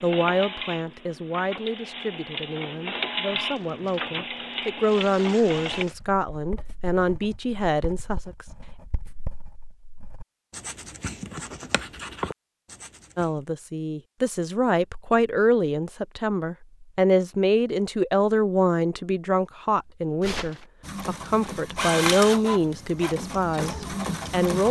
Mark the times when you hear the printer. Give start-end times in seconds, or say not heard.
0.0-5.8, 20.8-24.6.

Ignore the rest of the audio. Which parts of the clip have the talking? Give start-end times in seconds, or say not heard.
0.0-8.4, 13.2-24.6.